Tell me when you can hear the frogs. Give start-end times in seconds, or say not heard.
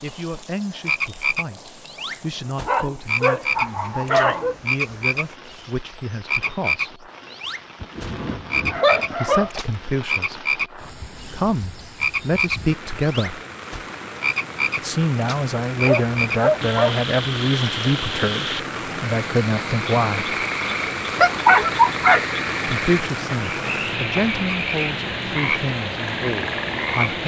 0.0-27.1.